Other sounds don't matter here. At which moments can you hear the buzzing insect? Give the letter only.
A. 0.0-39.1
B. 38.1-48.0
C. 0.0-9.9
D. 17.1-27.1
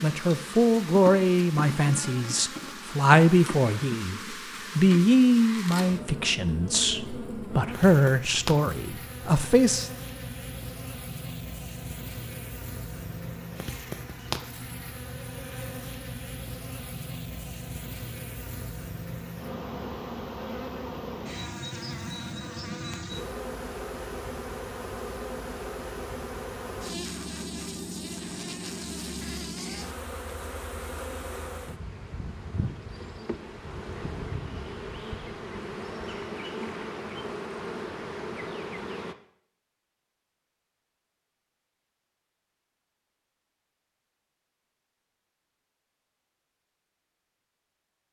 A.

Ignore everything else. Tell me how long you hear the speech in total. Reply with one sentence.
You can hear the speech for 10 seconds altogether.